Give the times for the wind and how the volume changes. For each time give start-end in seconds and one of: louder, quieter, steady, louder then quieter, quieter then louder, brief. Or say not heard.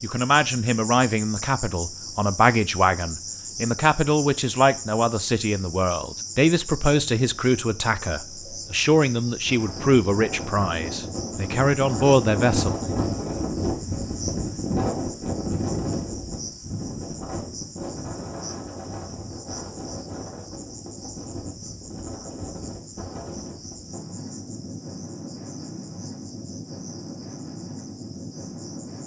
9.3-29.0 quieter.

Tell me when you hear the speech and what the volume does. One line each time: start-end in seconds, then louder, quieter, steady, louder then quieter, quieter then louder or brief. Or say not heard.
0.0-12.7 steady.